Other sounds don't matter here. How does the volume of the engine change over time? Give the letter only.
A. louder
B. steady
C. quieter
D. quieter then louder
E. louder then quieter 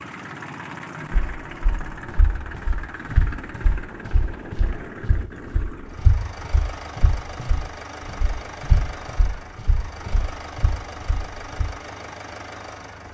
B.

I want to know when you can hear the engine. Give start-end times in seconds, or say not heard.
0.0-13.0.